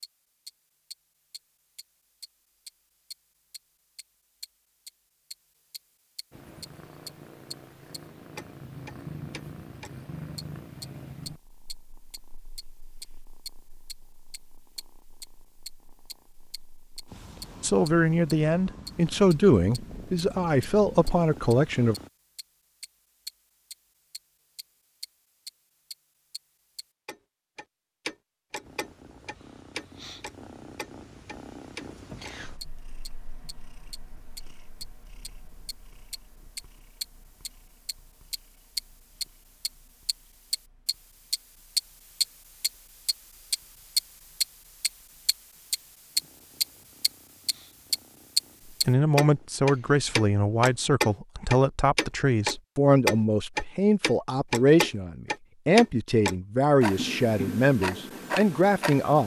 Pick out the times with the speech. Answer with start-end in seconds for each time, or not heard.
17.6-21.9, 48.9-59.2.